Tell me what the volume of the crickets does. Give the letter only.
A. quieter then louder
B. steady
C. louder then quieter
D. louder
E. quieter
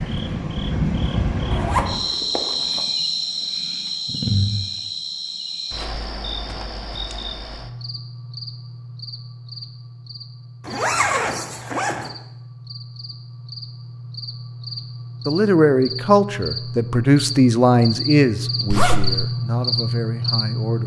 A.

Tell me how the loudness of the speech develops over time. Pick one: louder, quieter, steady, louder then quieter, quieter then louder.
quieter.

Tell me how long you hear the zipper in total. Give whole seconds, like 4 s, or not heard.
3 s.